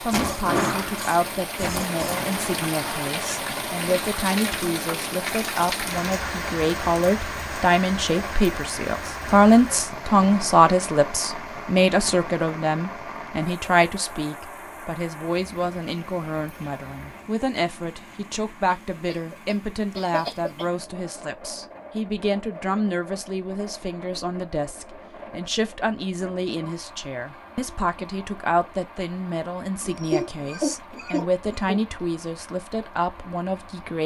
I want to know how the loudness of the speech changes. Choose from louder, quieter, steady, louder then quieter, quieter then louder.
louder then quieter.